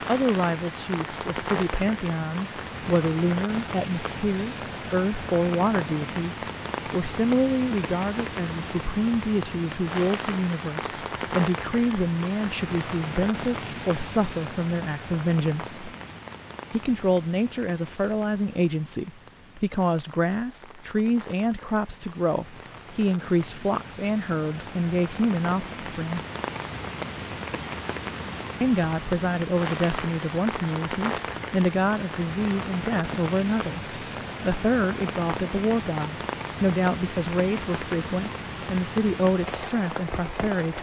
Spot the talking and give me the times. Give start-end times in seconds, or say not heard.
0.1-15.9, 16.7-26.2, 28.6-40.7.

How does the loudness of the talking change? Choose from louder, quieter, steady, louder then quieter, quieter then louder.
steady.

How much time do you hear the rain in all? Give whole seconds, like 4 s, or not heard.
41 s.